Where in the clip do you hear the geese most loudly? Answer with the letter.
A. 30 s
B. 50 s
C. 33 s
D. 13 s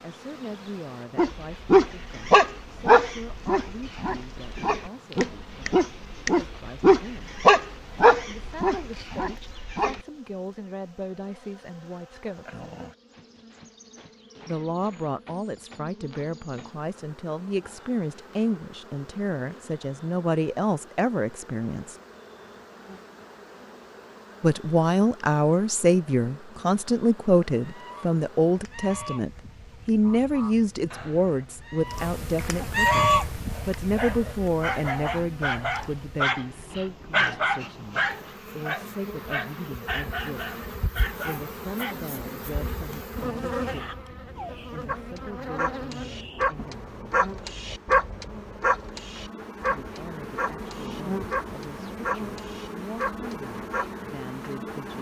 C.